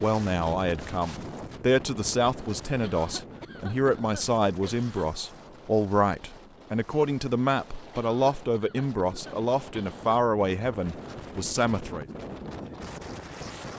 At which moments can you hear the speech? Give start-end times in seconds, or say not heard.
0.0-12.1.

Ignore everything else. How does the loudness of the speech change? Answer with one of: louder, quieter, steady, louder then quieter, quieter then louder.
steady.